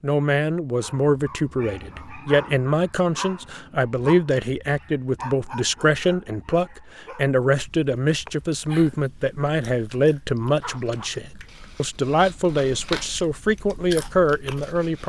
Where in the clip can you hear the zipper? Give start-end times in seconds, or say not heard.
10.6-11.2.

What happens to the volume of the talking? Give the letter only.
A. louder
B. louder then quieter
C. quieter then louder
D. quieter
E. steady
E.